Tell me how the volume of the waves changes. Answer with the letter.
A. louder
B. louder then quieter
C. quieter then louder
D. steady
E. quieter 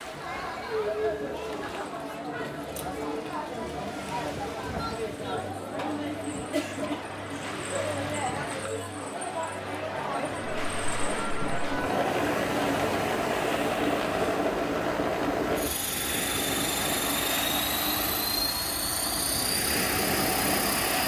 A.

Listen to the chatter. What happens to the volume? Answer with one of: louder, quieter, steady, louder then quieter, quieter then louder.
steady.